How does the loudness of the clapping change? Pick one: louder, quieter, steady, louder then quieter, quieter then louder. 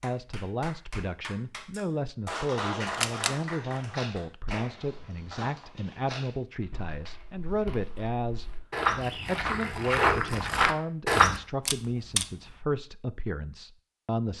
louder then quieter.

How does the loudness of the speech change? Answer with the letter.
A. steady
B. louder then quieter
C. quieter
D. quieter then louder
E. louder
A.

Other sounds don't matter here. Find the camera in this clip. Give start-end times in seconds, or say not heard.
2.9-3.4, 11.7-12.5.